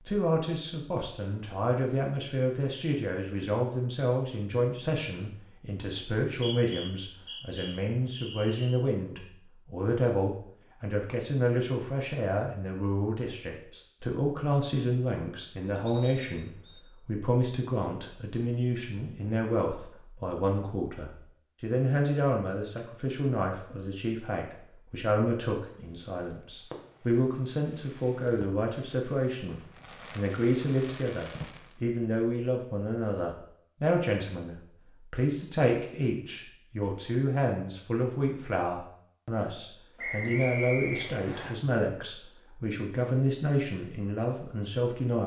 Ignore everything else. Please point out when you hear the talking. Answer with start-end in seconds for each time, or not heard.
0.1-45.2.